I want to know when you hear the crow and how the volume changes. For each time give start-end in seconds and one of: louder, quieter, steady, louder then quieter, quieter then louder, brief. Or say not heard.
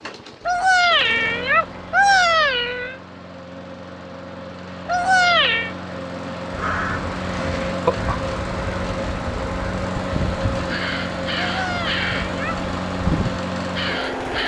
6.5-14.4 quieter then louder.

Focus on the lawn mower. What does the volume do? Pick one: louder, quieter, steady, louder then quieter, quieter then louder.
louder.